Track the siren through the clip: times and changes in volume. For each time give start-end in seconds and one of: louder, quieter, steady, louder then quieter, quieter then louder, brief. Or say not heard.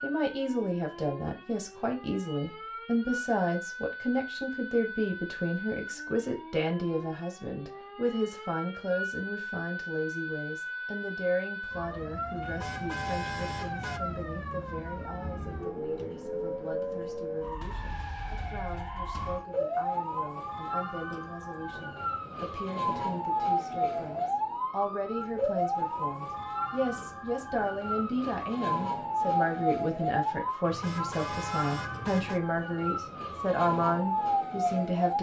0.0-35.1 louder.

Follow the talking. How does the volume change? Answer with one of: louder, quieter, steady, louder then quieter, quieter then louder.
quieter then louder.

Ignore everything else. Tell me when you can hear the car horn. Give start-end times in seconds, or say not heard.
12.4-14.0, 30.6-32.4.